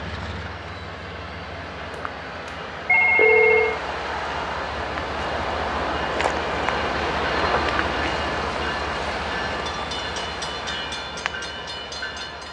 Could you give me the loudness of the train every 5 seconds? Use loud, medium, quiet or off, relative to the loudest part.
medium, loud, medium.